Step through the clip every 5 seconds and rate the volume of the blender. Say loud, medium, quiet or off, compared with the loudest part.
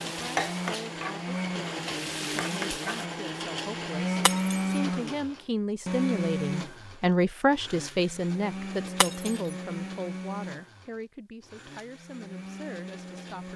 loud, loud, medium.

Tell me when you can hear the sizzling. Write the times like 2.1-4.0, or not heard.
0.0-3.0.